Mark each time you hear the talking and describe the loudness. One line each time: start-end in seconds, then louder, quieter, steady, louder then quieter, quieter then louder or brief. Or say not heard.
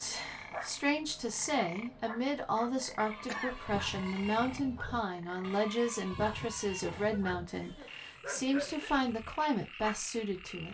0.0-10.6 steady.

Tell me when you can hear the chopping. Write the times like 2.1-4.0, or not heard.
not heard.